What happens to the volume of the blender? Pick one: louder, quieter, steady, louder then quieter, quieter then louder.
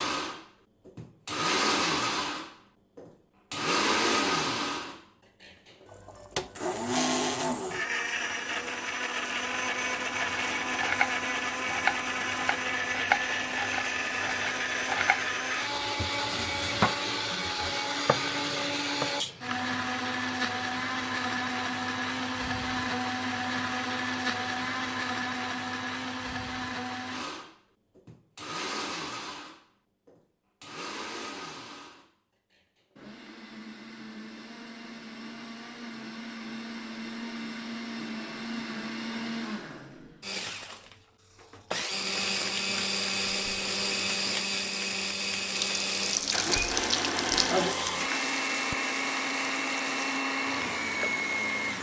quieter then louder.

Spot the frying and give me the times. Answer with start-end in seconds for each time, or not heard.
45.5-51.7.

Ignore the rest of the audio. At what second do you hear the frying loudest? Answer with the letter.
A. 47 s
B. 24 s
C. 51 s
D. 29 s
A.